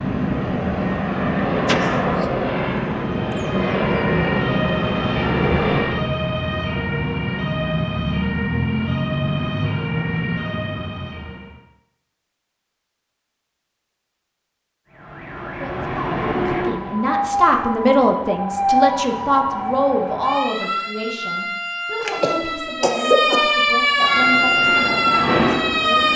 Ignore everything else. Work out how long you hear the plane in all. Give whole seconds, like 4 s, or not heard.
8 s.